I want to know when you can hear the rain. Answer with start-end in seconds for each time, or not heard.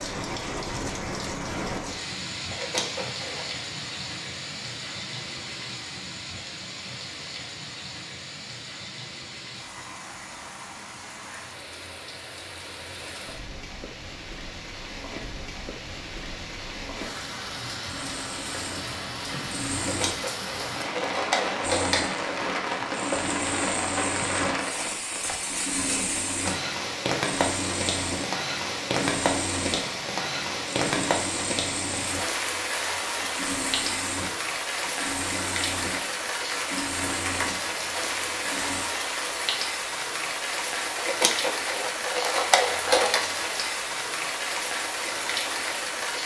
0.0-46.2.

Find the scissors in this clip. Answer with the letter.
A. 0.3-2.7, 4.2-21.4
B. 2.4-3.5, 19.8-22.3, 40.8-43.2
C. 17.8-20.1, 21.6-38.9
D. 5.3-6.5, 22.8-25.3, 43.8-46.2
B.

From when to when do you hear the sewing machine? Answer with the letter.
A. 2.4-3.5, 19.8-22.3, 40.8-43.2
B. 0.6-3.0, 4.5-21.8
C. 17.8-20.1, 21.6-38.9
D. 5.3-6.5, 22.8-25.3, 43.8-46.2
C.